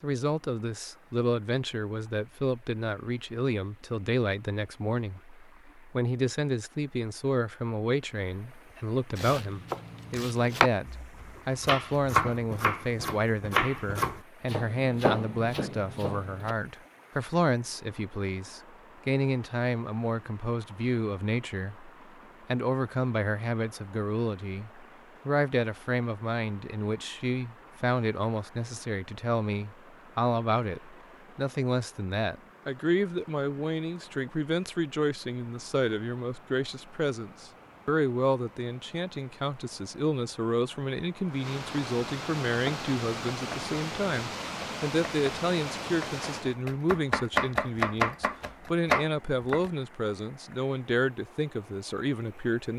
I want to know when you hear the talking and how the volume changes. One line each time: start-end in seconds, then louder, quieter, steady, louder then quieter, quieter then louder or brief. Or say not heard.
0.0-52.7 steady.